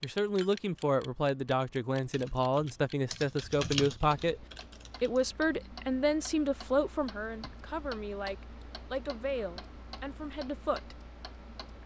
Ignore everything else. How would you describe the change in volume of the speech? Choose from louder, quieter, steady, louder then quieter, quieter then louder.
quieter.